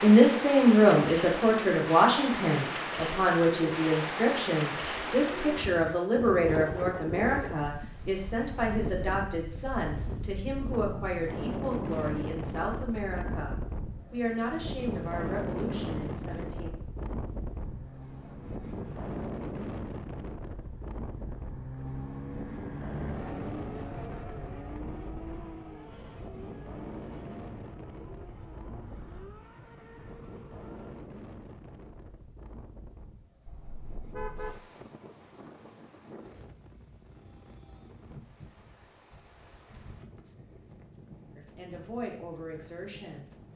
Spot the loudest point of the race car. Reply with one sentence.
The loudest moment of the race car is at 23 seconds.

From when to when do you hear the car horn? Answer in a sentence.
You can hear the car horn from 33.5 to 34.6 s.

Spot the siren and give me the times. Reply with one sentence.
The siren can't be heard in this clip.